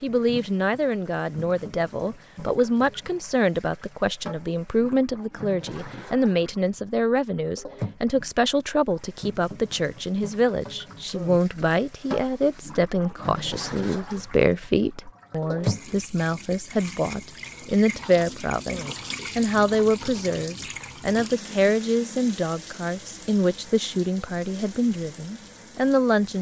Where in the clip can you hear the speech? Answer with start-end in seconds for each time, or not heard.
0.0-26.3.